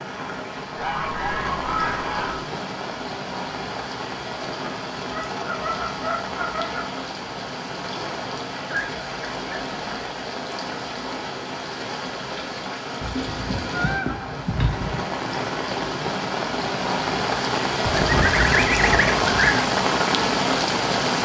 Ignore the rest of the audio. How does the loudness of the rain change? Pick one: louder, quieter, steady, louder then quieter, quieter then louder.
louder.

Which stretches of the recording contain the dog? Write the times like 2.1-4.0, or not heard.
not heard.